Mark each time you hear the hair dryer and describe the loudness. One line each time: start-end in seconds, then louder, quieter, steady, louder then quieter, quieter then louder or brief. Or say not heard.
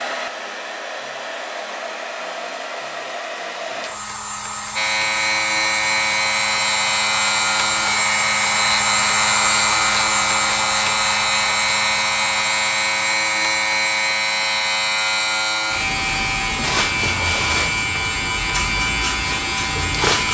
0.0-20.1 louder then quieter.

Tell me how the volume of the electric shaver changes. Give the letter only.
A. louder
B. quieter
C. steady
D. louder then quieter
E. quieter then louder
C.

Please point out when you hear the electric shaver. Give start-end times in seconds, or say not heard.
4.8-20.2.